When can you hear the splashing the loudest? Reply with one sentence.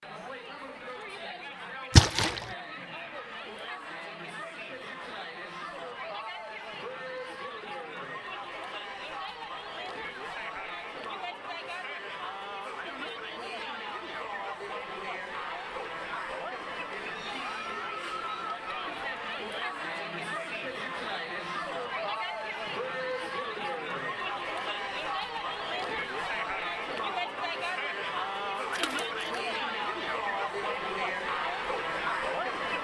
The volume of the splashing peaks at 2 seconds.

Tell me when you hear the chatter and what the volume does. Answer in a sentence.
The chatter can be heard from 0.0 to 32.7 s, getting louder.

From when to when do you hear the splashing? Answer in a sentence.
The splashing can be heard from 1.9 to 2.5 s and from 28.7 to 29.4 s.